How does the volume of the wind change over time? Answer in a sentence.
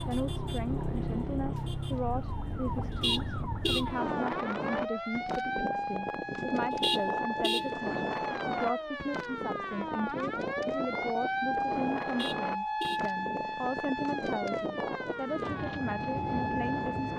The loudness of the wind stays about the same.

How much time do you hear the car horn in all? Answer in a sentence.
You can hear the car horn for 3 seconds altogether.